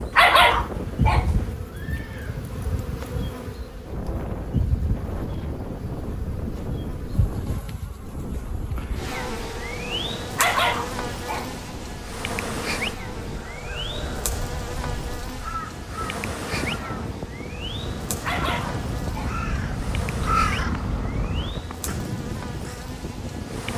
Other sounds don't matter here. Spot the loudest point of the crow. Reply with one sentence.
The volume of the crow peaks at 20 seconds.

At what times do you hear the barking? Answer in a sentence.
The barking can be heard from 0.1 to 1.6 s, from 10.3 to 11.6 s and from 18.2 to 19.4 s.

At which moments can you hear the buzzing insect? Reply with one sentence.
You can hear the buzzing insect from 0.0 to 23.7 s.